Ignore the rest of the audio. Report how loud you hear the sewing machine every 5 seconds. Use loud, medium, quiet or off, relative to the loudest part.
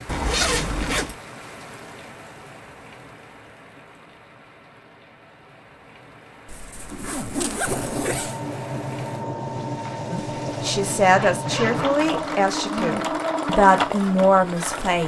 off, loud, loud.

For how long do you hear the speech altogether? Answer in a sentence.
You can hear the speech for 5 seconds altogether.